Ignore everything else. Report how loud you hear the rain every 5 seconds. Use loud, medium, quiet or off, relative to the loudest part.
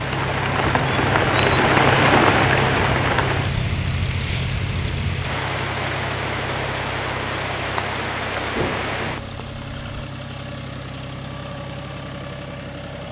loud, medium, off.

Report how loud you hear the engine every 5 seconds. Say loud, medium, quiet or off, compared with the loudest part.
loud, medium, medium.